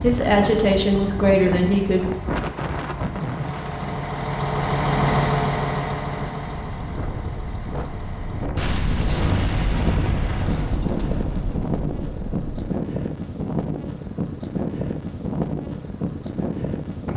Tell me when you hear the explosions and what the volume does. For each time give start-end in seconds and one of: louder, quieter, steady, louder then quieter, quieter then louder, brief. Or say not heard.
8.6-12.7 quieter.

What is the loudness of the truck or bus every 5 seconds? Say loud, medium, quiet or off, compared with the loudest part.
loud, loud, off, off.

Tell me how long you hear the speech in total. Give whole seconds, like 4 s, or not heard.
2 s.